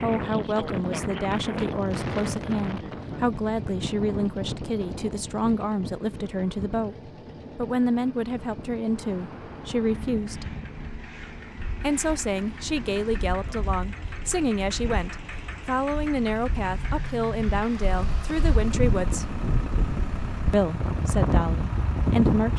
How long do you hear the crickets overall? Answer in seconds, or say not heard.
not heard.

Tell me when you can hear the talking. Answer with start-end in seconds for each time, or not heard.
0.0-7.0, 7.5-10.6, 11.8-19.2, 20.5-22.5.